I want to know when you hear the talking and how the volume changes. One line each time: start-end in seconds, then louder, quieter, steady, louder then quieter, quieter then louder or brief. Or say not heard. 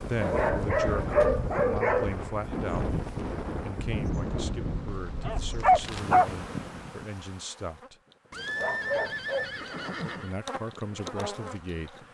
0.1-2.9 brief
3.6-8.0 steady
10.2-11.9 brief.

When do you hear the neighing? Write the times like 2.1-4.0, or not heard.
8.3-10.3.